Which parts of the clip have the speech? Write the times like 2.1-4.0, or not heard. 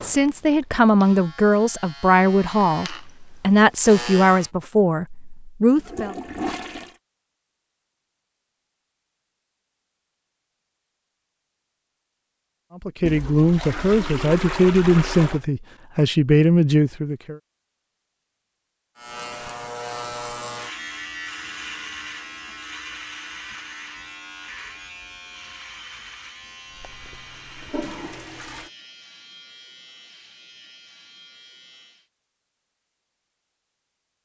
0.0-6.2, 12.8-17.4.